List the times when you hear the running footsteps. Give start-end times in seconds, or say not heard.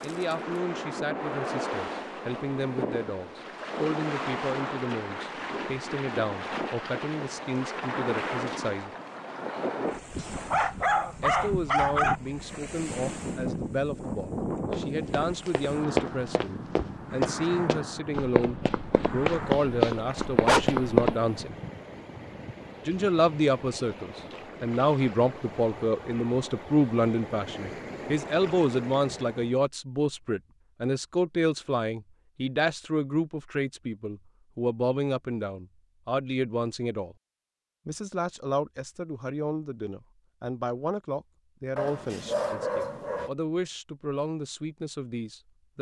14.7-21.1.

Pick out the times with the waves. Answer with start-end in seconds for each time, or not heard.
0.0-29.6.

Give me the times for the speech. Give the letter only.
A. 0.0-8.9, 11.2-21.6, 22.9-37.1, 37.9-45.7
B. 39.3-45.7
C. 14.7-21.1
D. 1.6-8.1
A.